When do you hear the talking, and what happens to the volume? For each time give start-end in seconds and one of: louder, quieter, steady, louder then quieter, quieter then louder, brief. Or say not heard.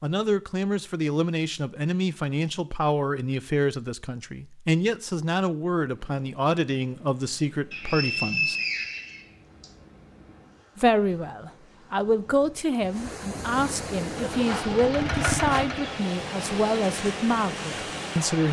0.0-8.6 steady
10.8-18.4 steady.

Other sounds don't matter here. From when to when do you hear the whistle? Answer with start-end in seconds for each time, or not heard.
7.7-9.7.